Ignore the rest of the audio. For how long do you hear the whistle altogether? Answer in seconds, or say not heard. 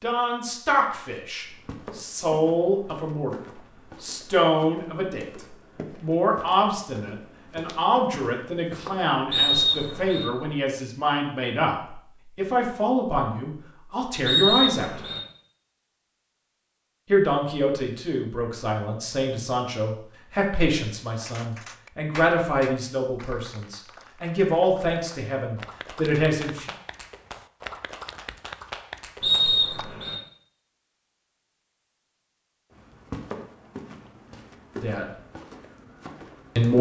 3 s.